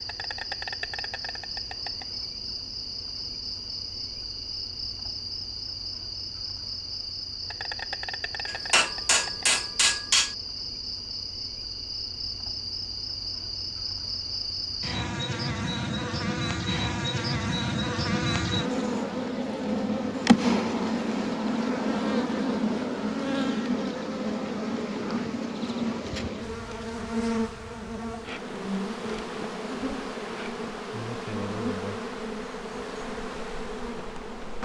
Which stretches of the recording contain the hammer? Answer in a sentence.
The hammer can be heard from 8.4 to 10.3 s.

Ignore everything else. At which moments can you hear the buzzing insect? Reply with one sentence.
You can hear the buzzing insect from 0.0 to 34.5 s.